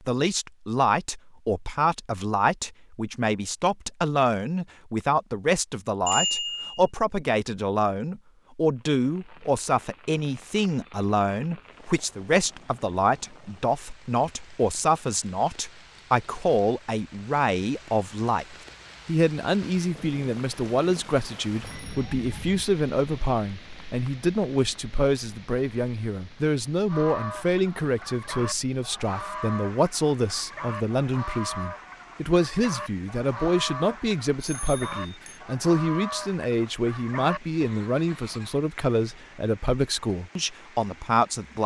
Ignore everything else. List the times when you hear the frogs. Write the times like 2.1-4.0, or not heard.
not heard.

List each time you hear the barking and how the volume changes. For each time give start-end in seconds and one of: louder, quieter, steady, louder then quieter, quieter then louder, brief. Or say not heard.
not heard.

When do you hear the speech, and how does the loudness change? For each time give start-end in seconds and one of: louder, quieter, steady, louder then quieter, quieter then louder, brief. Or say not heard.
0.1-41.6 steady.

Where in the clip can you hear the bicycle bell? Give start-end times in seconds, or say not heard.
6.0-6.8, 21.6-22.6, 34.4-35.4.